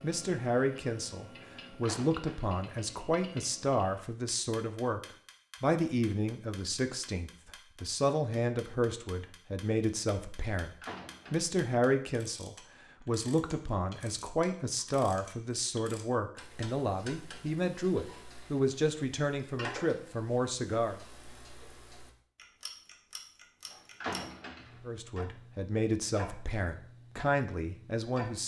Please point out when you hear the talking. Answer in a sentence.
The talking can be heard from 0.0 to 21.0 s and from 24.9 to 28.4 s.